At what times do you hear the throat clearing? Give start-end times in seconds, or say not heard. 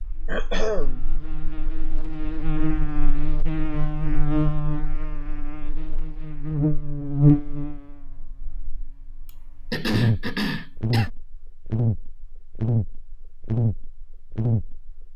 0.2-1.0, 9.2-11.1.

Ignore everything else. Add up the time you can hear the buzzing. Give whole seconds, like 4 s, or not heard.
15 s.